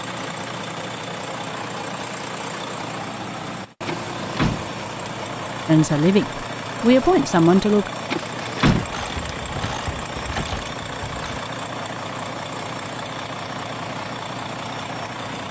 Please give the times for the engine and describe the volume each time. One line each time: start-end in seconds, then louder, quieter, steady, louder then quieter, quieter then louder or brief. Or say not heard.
0.0-15.4 steady.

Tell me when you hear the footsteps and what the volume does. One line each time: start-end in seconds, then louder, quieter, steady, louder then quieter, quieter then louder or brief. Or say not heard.
not heard.